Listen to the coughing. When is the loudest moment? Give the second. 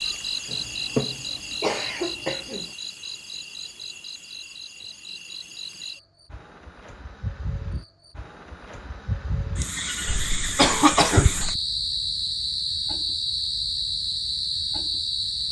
11 s.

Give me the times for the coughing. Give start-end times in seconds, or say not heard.
0.5-2.7, 10.1-11.5.